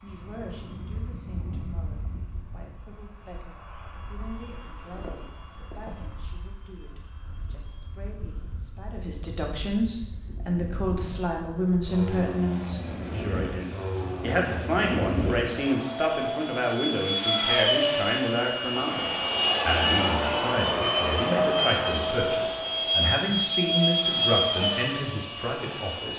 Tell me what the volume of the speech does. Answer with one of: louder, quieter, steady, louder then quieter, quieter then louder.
louder.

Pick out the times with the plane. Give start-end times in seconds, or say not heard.
0.0-26.1.